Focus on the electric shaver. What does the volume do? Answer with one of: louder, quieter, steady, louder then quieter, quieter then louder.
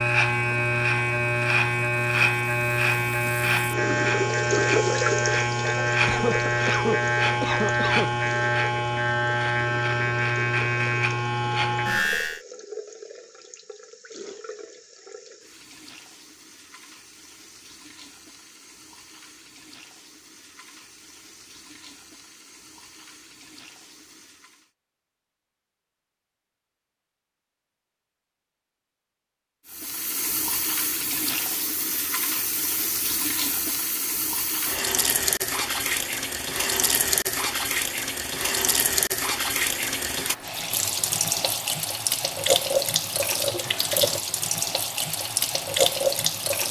steady.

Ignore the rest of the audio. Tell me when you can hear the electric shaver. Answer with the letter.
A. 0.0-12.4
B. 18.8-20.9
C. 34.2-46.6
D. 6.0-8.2
A.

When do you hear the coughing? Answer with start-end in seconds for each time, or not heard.
6.0-8.2.